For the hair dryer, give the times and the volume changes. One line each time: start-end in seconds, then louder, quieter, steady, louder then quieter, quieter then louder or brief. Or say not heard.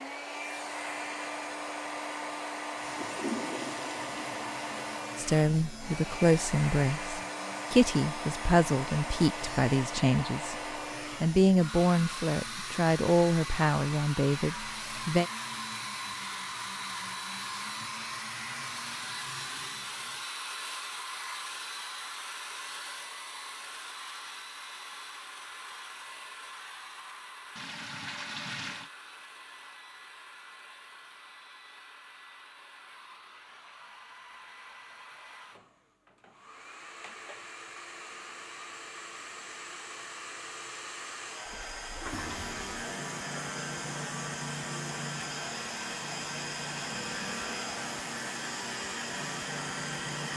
0.0-50.3 quieter then louder.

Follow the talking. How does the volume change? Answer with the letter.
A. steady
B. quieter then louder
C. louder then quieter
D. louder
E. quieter
A.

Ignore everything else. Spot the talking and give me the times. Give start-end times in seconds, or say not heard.
5.2-10.6, 11.2-15.2.